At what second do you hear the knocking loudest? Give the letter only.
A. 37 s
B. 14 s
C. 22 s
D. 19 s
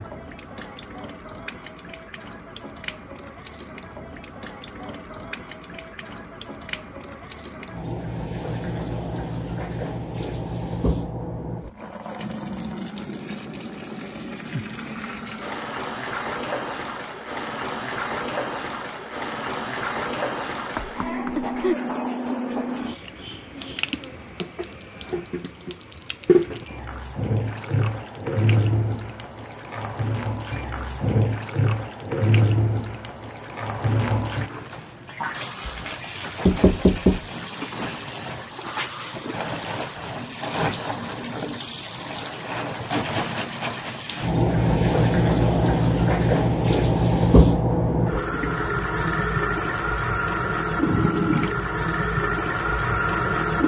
A.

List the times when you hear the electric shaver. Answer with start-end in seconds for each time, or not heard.
not heard.